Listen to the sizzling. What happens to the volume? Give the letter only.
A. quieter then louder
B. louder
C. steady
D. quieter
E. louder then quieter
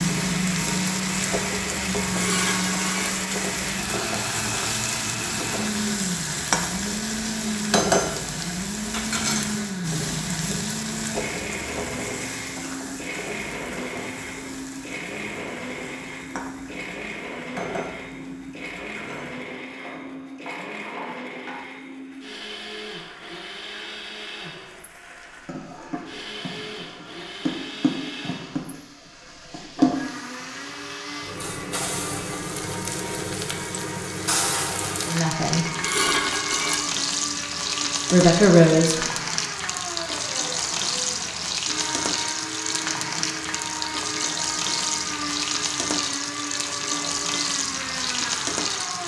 A.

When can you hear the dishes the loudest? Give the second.
36 s.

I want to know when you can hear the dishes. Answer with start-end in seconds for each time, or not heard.
2.0-3.1, 35.6-36.8.